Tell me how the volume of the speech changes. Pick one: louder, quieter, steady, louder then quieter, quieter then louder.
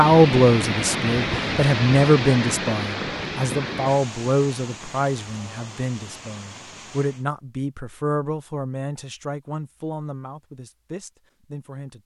quieter.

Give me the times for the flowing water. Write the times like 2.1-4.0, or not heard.
0.0-7.2.